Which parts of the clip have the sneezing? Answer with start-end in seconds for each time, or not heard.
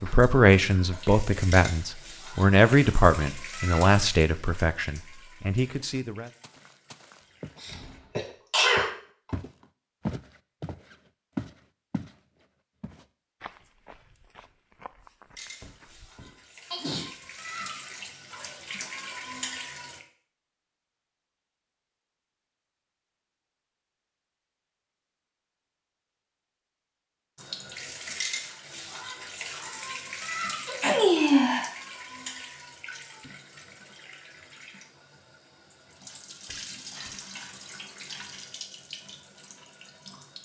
7.6-8.9, 16.7-17.6, 30.6-31.7.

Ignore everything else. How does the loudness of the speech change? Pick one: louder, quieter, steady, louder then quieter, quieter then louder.
quieter.